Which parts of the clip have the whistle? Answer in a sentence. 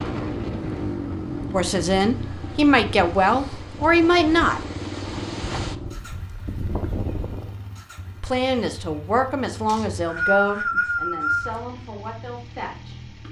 The whistle can be heard from 9.7 to 11.6 s.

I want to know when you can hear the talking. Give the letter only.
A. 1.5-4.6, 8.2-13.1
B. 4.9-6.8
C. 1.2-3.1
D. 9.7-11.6
A.